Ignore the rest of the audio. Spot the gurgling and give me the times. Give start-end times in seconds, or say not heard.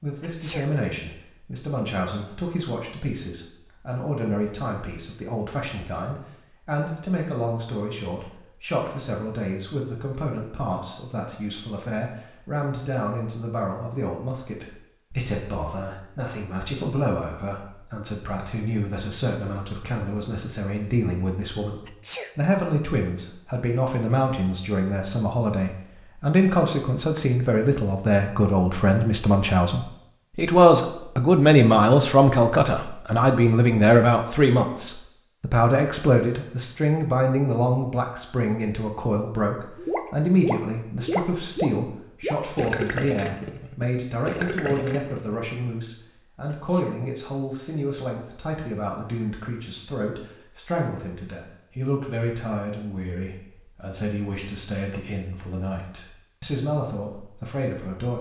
39.8-45.5.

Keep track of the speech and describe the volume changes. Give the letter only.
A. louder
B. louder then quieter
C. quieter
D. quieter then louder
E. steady
B.